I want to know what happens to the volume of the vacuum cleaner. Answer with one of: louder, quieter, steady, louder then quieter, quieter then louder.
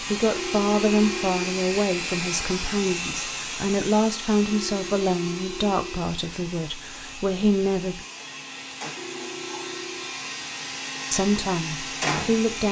quieter then louder.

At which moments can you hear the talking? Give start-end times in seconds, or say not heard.
0.1-8.0, 11.1-12.6.